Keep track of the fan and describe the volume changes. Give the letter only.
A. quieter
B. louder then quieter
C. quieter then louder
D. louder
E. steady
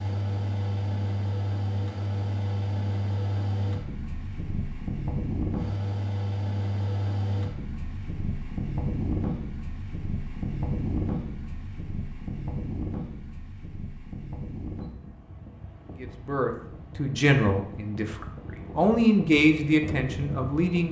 A.